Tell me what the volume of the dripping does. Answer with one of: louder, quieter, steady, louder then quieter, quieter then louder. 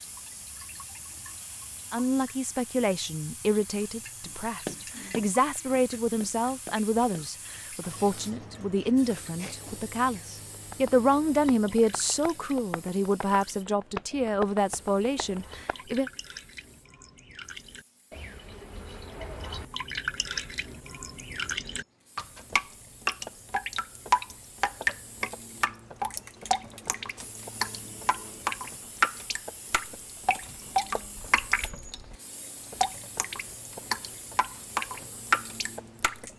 louder.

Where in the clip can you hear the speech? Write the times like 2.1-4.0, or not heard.
1.9-16.1.